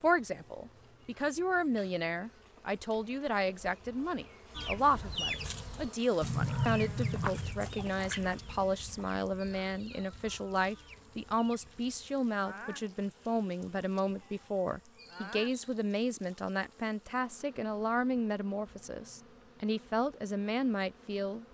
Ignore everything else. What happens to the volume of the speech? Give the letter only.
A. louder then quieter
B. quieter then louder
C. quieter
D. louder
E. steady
E.